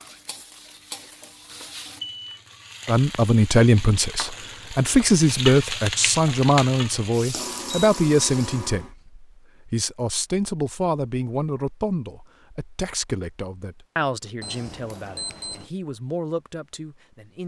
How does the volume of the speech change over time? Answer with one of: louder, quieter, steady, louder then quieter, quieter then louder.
quieter.